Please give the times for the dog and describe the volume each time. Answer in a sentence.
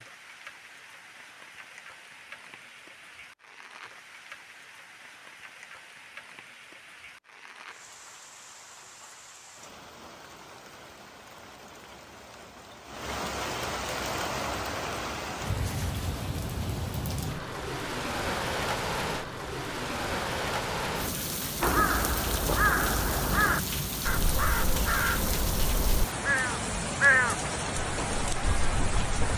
You can't hear the dog here.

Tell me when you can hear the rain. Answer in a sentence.
You can hear the rain from 0.0 to 29.3 s.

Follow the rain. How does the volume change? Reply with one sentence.
The volume of the rain goes up.